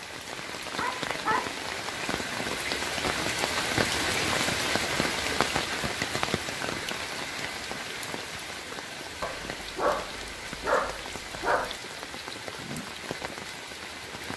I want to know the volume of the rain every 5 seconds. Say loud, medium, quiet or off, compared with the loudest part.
loud, loud, medium.